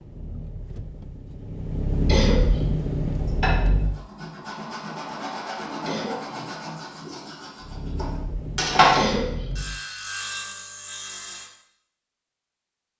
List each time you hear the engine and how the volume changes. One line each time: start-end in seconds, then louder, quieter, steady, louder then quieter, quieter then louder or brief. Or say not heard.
0.0-4.0 louder
7.6-9.8 brief.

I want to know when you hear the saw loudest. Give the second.
9 s.